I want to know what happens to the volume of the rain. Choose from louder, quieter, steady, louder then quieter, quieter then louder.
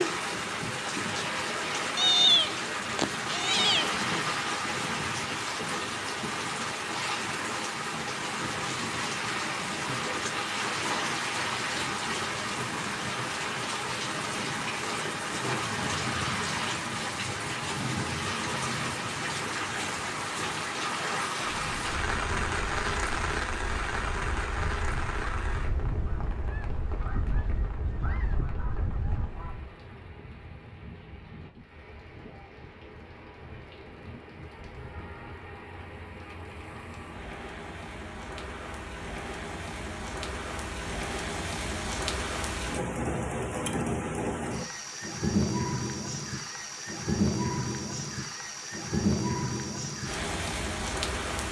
quieter then louder.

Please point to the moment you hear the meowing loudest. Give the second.
2 s.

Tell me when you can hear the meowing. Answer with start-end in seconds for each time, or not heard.
1.9-4.0.